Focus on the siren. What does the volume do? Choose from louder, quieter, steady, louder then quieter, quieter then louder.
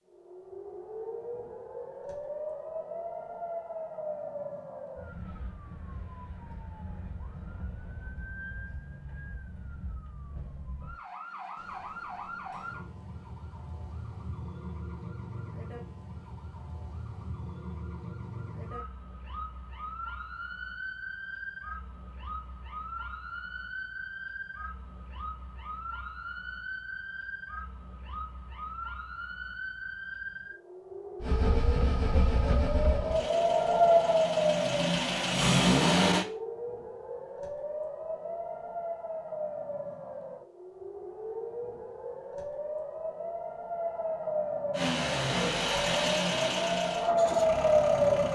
louder.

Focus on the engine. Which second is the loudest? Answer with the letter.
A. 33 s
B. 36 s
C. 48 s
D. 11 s
B.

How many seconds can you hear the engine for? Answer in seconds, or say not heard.
9 s.